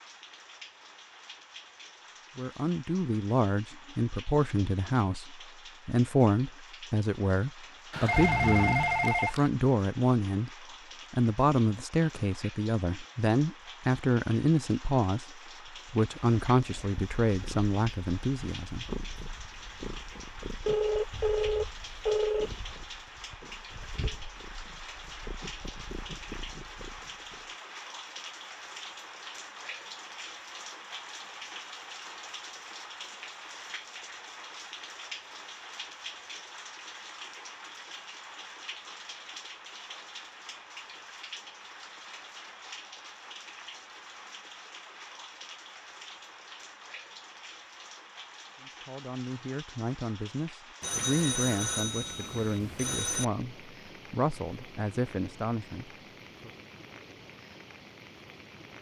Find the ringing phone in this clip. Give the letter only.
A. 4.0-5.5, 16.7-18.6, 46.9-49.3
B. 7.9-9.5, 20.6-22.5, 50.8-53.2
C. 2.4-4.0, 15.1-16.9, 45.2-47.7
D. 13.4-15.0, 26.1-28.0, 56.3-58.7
B.